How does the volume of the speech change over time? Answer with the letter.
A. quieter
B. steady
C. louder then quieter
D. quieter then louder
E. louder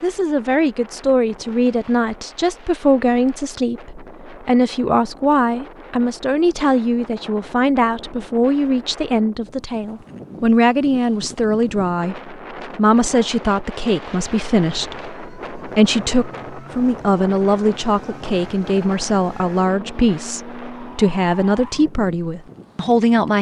B.